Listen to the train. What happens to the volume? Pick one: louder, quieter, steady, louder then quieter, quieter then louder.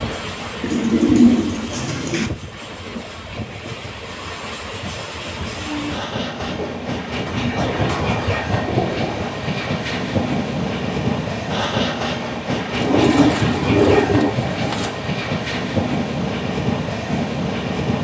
louder.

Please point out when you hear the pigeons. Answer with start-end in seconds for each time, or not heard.
0.6-2.3, 6.4-9.3, 12.8-14.9.